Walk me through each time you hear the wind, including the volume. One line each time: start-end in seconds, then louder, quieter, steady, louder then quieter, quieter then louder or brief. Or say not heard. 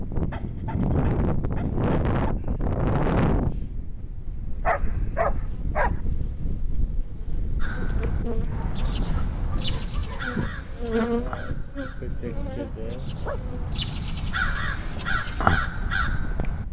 0.0-16.6 quieter.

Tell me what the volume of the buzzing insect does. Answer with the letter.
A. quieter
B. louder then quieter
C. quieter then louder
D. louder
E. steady
B.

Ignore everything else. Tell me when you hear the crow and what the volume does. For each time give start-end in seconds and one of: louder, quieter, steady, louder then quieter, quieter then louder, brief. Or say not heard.
7.6-16.6 quieter then louder.